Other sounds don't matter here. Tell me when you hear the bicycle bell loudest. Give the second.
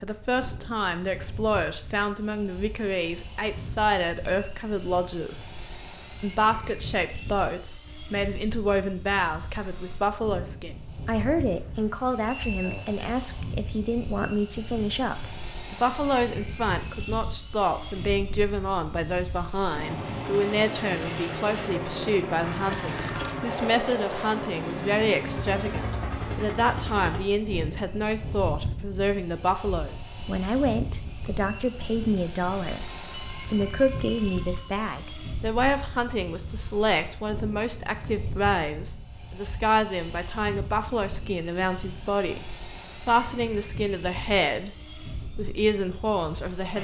12 s.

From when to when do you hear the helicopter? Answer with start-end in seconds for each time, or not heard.
0.0-46.8.